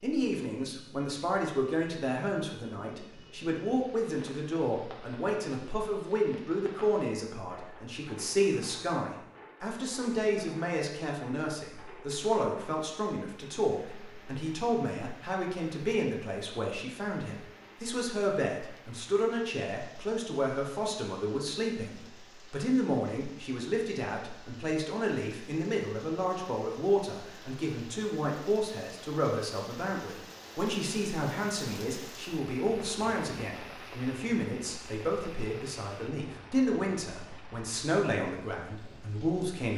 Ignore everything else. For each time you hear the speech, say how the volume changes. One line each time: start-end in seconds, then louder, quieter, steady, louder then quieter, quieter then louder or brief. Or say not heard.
0.0-39.7 steady.